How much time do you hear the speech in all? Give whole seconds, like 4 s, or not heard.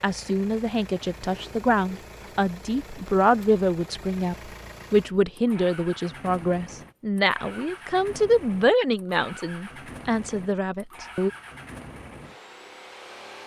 11 s.